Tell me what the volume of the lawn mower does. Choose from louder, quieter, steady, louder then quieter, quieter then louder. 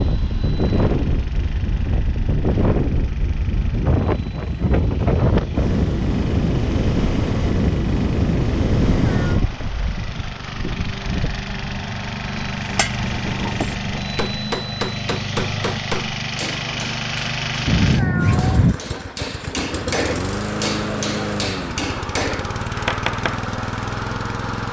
louder.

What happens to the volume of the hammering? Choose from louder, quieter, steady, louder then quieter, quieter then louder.
quieter then louder.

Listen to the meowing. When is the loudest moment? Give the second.
18 s.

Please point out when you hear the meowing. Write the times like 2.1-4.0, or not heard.
8.9-9.5, 17.6-18.8.